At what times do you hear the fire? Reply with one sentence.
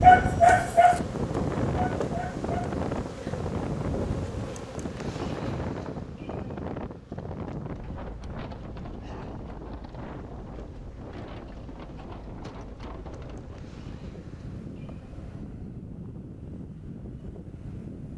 You can't hear the fire here.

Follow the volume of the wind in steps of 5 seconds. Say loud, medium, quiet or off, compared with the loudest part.
loud, medium, medium, medium.